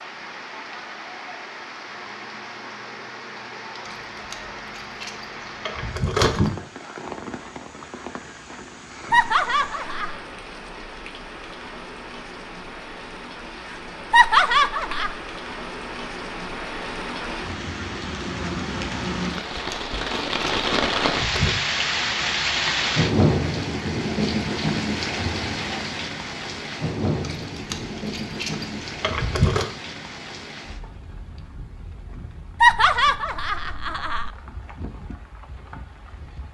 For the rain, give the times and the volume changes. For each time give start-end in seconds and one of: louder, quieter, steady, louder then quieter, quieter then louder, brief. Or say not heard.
0.0-36.5 louder then quieter.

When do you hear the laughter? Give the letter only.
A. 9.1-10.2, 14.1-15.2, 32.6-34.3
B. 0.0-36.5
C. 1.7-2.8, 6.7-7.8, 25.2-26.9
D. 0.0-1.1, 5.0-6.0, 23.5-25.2
A.